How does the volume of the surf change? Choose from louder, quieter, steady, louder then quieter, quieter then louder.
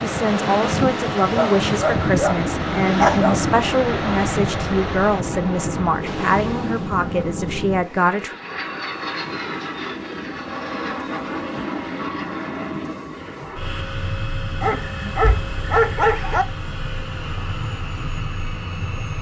quieter.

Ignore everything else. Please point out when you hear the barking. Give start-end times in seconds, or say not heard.
1.4-3.4, 14.6-16.4.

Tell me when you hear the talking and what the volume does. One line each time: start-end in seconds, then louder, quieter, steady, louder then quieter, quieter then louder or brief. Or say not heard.
0.0-8.3 steady.